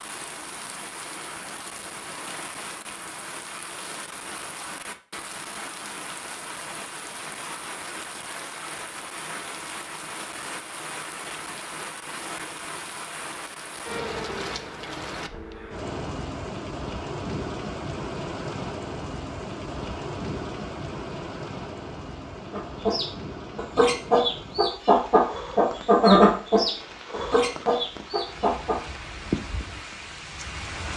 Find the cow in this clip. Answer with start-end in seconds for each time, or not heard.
not heard.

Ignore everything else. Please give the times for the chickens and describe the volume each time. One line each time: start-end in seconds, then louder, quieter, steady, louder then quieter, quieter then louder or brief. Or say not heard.
22.5-28.8 louder then quieter.